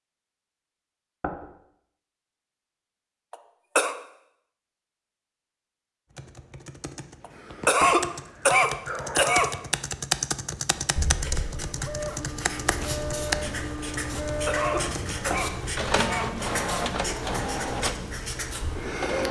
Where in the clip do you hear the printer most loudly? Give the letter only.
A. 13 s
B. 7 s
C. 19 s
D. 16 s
D.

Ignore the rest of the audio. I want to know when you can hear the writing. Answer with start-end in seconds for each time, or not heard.
10.8-19.2.